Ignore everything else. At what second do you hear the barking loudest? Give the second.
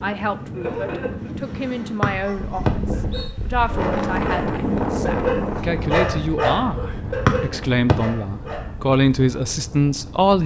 6 s.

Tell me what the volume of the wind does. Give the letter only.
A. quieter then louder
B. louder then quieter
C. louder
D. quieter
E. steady
B.